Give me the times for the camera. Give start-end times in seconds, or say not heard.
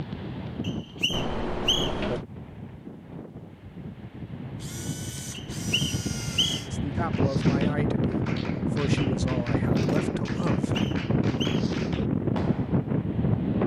1.1-2.2, 4.6-6.7, 9.7-10.5.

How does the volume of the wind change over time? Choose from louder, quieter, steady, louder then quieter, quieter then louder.
louder.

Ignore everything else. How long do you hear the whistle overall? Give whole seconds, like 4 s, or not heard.
4 s.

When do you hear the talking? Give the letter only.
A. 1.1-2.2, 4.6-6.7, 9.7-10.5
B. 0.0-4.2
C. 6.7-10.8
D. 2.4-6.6
C.